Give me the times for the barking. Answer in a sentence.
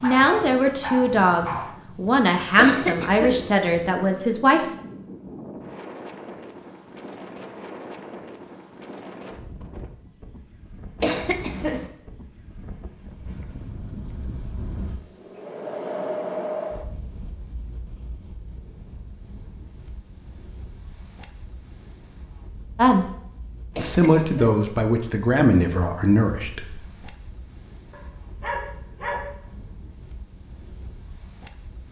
You can hear the barking from 0.0 to 1.8 s and from 27.9 to 29.3 s.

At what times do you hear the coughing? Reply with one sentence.
The coughing can be heard from 2.5 to 3.5 s, from 11.0 to 11.9 s and from 23.7 to 24.4 s.